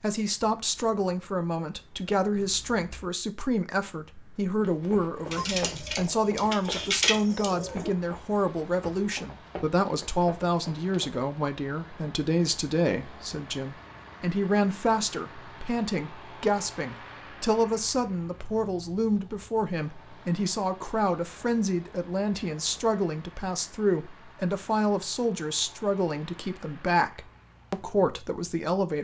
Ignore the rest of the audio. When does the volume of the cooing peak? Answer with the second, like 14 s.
7 s.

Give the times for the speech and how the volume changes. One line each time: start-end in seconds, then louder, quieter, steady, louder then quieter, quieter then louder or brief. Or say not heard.
0.0-29.0 steady.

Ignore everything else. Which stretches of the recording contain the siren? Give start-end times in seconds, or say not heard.
not heard.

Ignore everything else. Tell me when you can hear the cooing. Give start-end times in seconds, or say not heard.
5.3-7.9.